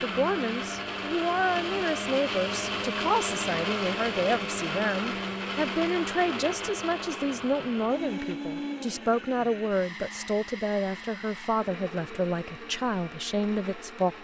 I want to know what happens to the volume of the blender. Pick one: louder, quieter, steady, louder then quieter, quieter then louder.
quieter.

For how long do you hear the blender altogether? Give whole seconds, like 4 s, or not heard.
14 s.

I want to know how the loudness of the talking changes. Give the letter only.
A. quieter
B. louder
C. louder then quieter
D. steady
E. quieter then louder
D.